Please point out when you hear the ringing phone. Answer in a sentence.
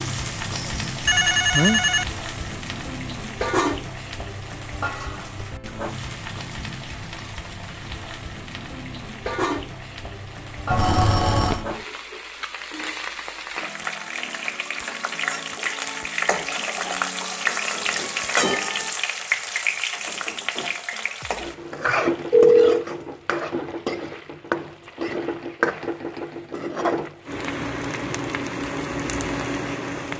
The ringing phone can be heard from 0.5 to 2.0 s, from 10.7 to 11.7 s and from 21.9 to 22.9 s.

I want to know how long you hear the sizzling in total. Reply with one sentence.
The sizzling can be heard for 30 seconds in total.